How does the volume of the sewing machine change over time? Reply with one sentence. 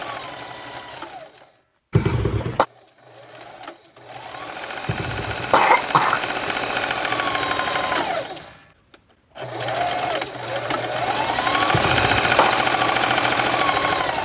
The volume of the sewing machine goes up.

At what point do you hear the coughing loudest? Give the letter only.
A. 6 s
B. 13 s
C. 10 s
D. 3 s
A.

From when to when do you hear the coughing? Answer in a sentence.
You can hear the coughing from 1.9 to 2.6 s, from 4.8 to 6.5 s and from 11.7 to 12.6 s.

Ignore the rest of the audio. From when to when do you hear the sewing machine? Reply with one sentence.
You can hear the sewing machine from 0.0 to 14.2 s.